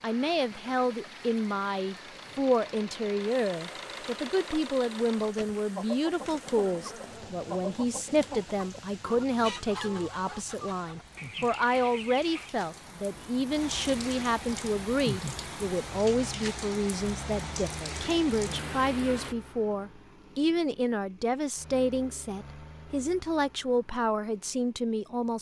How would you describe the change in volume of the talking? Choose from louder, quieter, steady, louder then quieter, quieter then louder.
steady.